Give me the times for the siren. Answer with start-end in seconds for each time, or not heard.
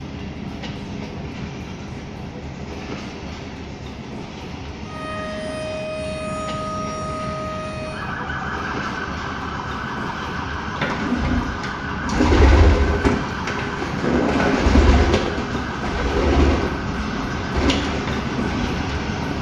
4.8-19.3.